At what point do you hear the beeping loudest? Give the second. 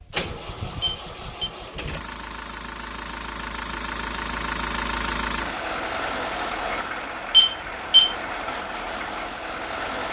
8 s.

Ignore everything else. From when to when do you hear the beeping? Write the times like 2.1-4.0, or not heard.
0.8-1.5, 7.3-8.2.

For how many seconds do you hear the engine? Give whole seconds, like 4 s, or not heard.
10 s.